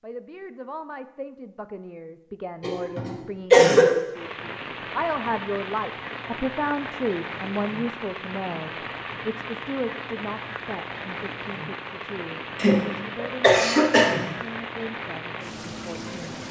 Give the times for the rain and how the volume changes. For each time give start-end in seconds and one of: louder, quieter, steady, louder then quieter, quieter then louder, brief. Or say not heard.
4.1-16.4 steady.